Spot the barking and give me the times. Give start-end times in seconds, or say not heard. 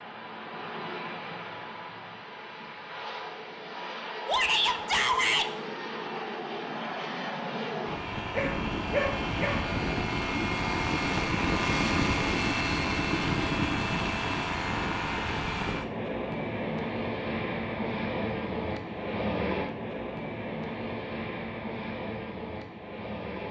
8.3-9.8.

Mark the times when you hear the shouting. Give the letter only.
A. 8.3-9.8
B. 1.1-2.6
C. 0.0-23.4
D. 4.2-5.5
D.